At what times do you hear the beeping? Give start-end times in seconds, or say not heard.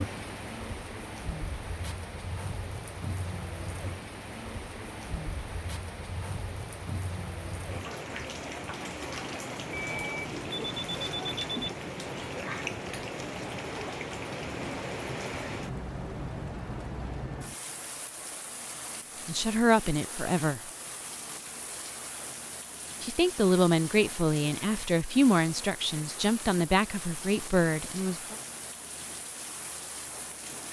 9.7-11.8.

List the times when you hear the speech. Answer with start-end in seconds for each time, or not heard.
19.2-20.6, 23.0-28.4.